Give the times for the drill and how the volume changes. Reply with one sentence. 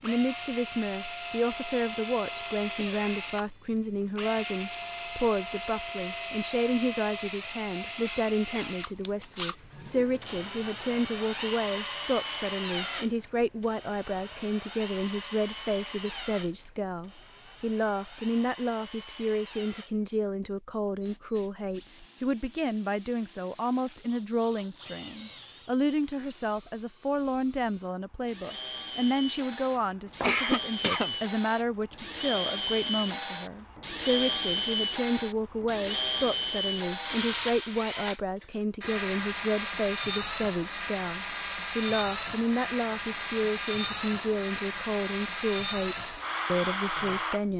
The drill can be heard from 0.0 to 47.5 s, getting quieter then louder.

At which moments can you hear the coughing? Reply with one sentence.
You can hear the coughing from 29.7 to 31.1 s.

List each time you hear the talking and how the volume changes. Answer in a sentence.
The talking can be heard from 0.0 to 47.5 s, at a steady volume.